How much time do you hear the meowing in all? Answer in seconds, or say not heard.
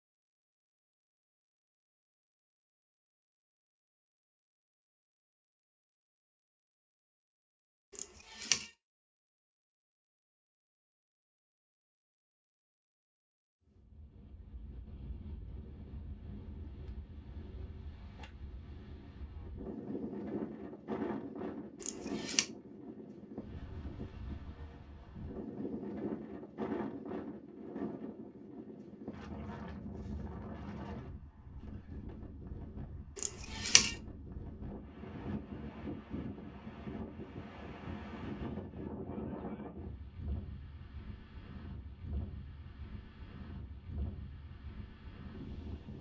2 s.